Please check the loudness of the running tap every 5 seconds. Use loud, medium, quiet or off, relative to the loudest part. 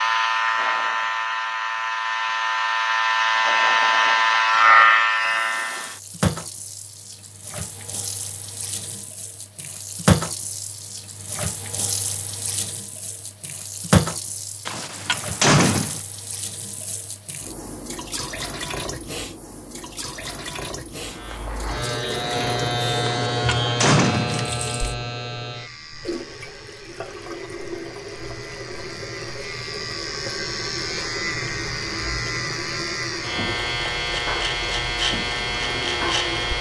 off, medium, loud, medium, medium, medium, medium, medium.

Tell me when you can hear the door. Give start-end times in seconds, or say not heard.
14.7-16.0, 23.0-24.6.